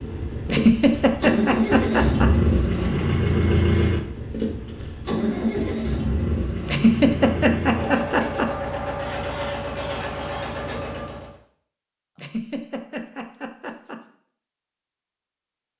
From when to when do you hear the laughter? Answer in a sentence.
The laughter can be heard from 0.5 to 2.3 s, from 6.7 to 8.5 s and from 12.2 to 14.0 s.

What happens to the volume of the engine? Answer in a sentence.
The volume of the engine goes down.